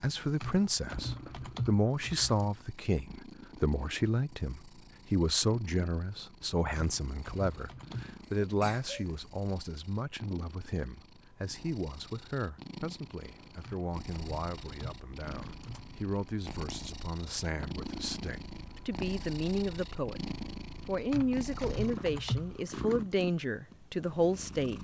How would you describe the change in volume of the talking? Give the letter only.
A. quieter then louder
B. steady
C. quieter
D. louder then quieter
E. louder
A.